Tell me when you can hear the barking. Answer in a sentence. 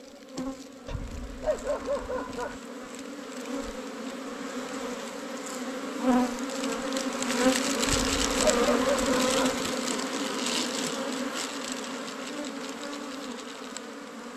The barking can be heard from 0.8 to 2.6 s and from 7.8 to 9.6 s.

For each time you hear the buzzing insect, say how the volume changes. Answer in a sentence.
The buzzing insect can be heard from 0.0 to 14.3 s, getting louder then quieter.